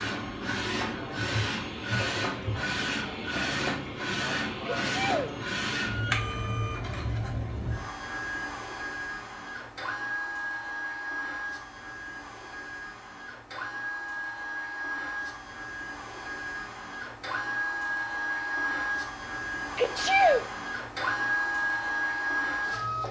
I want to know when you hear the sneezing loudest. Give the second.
20 s.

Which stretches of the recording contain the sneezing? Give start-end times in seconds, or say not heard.
4.7-5.3, 19.8-20.4.